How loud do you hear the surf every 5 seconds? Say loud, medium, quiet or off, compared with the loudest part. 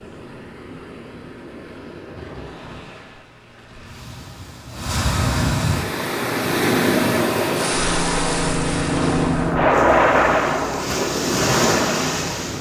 quiet, loud, loud.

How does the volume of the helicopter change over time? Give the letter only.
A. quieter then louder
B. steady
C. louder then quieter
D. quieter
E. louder
C.